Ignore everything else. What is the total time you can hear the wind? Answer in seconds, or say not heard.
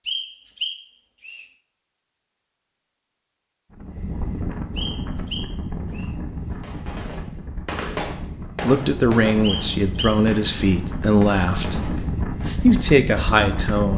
10 s.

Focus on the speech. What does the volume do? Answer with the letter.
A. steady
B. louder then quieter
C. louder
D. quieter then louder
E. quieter
D.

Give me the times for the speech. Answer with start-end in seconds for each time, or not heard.
8.6-13.9.